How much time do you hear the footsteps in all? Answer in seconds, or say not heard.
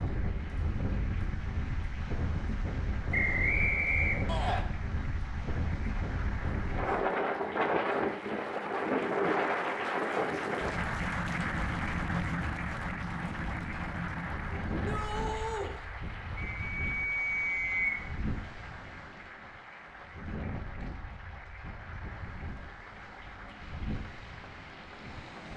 not heard.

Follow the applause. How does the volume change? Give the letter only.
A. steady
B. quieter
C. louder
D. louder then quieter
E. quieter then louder
D.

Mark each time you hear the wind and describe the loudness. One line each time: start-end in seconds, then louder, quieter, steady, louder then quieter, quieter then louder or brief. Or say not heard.
0.0-25.5 louder then quieter.